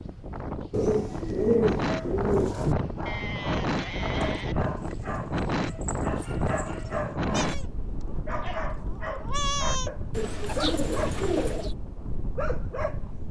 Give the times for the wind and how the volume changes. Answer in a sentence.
The wind can be heard from 0.0 to 13.2 s, getting quieter.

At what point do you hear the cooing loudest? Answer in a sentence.
The volume of the cooing peaks at 2 seconds.